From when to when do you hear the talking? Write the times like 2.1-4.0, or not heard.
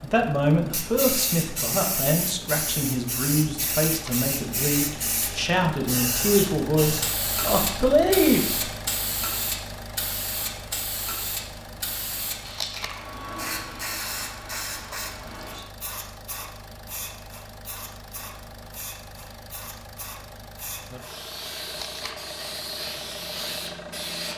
0.0-8.6.